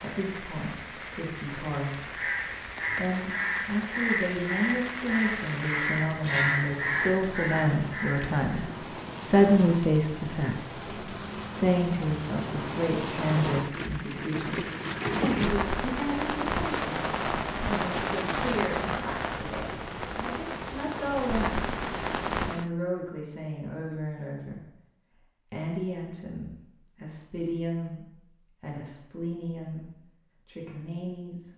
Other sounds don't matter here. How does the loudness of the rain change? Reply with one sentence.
The volume of the rain goes up.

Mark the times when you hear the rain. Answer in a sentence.
The rain can be heard from 0.0 to 22.7 s.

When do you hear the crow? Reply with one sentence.
The crow can be heard from 2.1 to 8.7 s.